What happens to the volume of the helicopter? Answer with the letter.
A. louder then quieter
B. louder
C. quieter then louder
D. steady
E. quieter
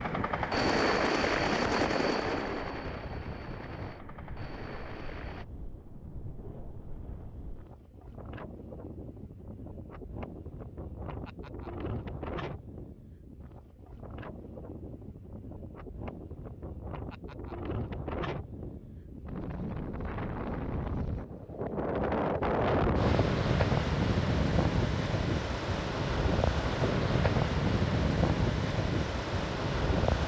E.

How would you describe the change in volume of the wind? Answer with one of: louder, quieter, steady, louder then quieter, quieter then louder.
louder.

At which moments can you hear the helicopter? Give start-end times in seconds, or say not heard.
0.0-5.5.